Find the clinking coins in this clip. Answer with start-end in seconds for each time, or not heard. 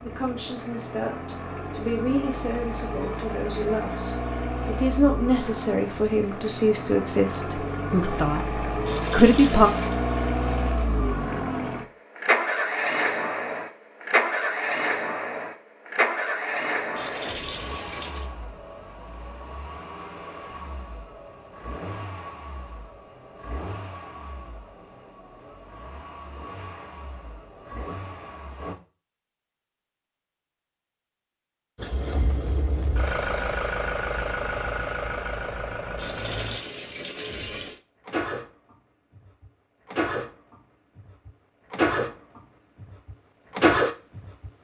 8.8-9.9, 16.9-18.3, 36.0-37.8.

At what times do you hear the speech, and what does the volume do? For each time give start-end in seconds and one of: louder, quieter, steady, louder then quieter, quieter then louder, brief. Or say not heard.
0.1-9.7 louder.